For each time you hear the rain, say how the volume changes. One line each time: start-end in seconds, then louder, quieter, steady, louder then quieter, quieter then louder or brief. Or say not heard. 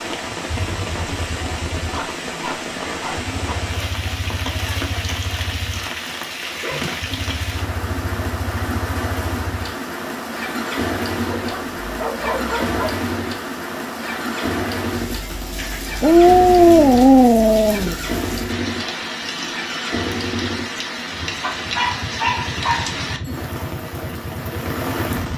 0.0-25.3 steady.